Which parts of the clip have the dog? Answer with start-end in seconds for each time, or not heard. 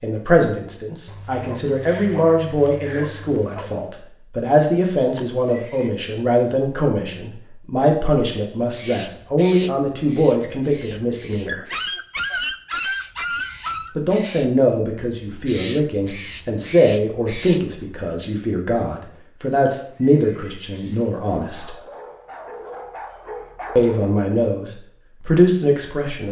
1.1-3.9, 11.4-13.9, 21.4-24.0.